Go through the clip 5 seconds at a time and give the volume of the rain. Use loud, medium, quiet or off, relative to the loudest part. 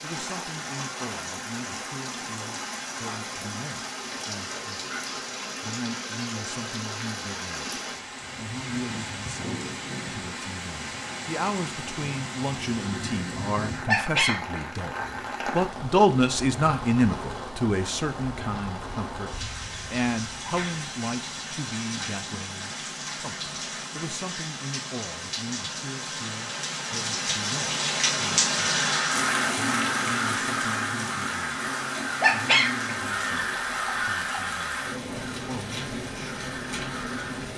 medium, medium, medium, medium, medium, loud, medium, medium.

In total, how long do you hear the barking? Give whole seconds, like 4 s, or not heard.
2 s.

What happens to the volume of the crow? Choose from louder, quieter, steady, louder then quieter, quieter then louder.
quieter.